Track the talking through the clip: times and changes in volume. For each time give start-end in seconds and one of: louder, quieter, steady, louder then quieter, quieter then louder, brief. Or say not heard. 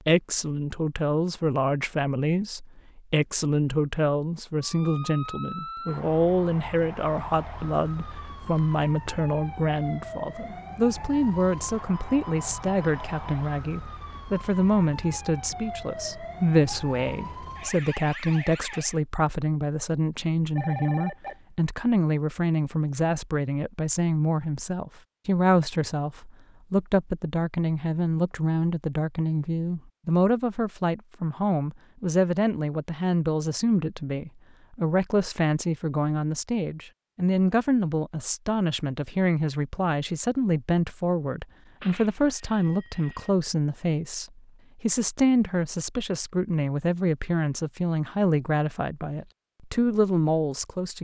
0.1-50.9 steady.